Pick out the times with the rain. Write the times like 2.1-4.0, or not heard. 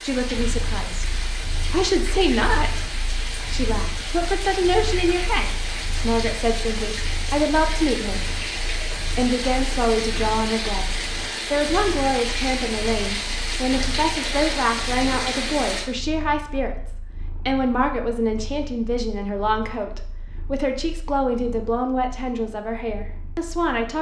0.0-15.9.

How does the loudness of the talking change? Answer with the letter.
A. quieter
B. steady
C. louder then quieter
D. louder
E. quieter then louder
B.